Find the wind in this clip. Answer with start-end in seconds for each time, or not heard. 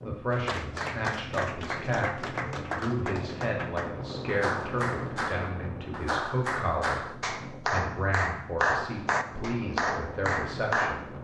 0.0-11.1.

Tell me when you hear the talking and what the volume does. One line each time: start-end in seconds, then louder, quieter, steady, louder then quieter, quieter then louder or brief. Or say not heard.
0.0-11.1 steady.